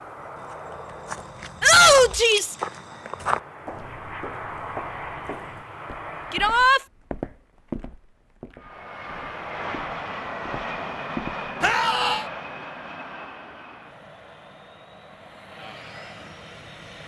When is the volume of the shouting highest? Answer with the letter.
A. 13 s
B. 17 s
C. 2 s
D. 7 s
C.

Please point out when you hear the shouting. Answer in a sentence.
The shouting can be heard from 1.6 to 2.5 s, from 6.3 to 6.8 s and from 11.6 to 12.2 s.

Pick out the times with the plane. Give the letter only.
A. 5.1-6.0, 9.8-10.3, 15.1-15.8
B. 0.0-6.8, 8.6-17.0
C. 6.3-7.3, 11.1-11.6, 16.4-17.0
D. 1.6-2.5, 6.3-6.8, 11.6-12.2
B.